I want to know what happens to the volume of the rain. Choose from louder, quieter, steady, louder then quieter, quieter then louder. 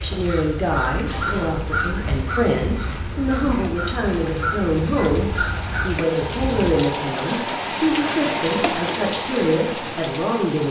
louder.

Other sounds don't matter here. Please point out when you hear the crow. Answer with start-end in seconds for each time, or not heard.
0.0-6.8.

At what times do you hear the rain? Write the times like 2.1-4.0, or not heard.
0.2-10.6.